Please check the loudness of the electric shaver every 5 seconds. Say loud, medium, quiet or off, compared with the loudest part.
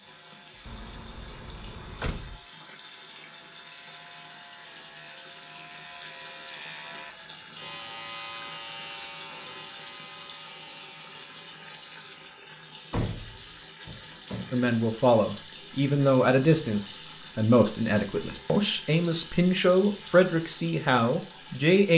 quiet, loud, medium, off, off.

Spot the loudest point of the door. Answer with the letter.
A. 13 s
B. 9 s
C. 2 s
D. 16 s
A.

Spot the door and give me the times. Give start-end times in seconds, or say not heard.
0.7-2.4, 12.9-14.7.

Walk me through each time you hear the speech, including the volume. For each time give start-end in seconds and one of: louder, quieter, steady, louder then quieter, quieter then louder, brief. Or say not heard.
14.5-21.9 steady.